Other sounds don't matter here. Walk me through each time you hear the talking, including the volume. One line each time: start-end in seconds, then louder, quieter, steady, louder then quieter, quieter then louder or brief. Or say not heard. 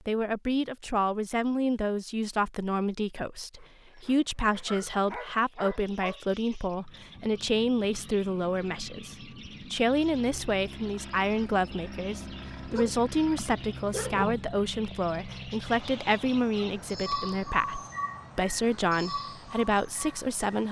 0.1-20.6 steady.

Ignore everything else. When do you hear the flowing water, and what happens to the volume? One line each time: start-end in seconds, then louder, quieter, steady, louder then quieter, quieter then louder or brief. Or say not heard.
not heard.